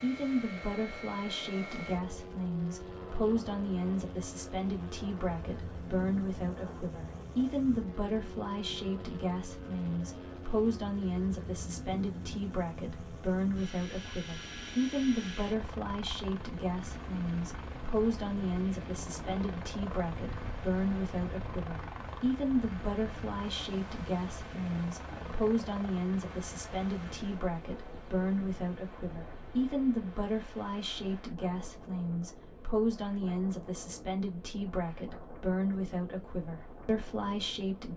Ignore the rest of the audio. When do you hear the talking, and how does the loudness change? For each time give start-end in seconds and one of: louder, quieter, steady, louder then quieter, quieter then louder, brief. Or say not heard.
0.0-37.9 steady.